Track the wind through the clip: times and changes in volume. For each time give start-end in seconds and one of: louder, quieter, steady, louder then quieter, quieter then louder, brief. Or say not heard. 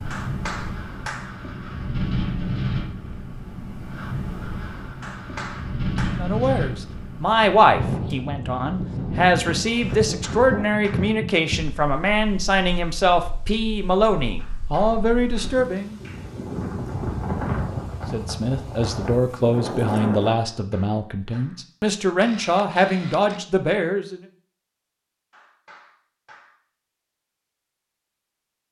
0.0-20.3 quieter then louder.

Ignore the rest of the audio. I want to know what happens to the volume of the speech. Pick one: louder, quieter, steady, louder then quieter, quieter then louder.
steady.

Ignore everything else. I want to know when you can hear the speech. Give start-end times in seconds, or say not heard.
6.1-15.9, 18.1-24.2.